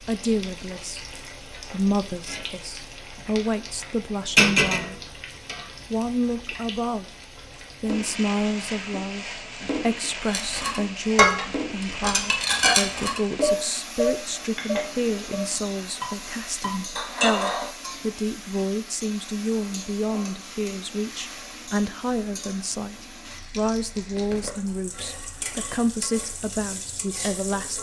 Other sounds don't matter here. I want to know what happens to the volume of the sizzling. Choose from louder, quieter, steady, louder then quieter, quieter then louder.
quieter.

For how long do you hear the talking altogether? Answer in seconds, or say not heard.
26 s.